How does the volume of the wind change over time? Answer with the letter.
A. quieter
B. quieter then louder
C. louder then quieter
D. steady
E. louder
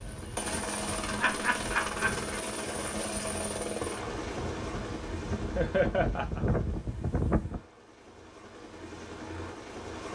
E.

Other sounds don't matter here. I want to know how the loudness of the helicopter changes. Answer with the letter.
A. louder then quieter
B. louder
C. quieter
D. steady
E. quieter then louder
E.